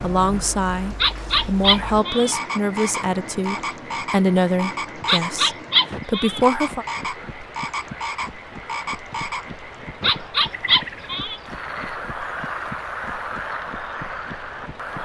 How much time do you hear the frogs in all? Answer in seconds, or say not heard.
15 s.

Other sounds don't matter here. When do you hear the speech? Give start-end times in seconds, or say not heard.
0.0-6.8.